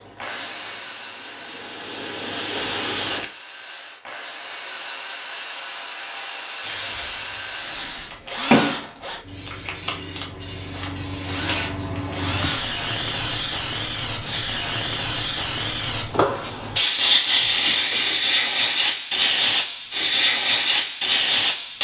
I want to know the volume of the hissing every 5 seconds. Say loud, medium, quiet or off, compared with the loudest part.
medium, medium, medium, loud, loud.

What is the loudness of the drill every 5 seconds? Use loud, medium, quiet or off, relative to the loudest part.
medium, loud, loud, off, off.